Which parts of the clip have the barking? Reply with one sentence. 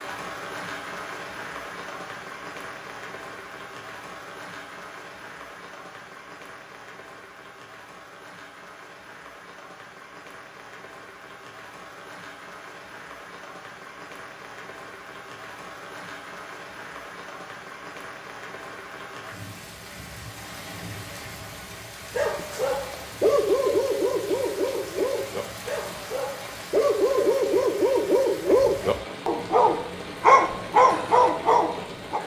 You can hear the barking from 22.1 to 32.2 s.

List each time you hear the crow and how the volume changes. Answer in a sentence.
You can't hear the crow here.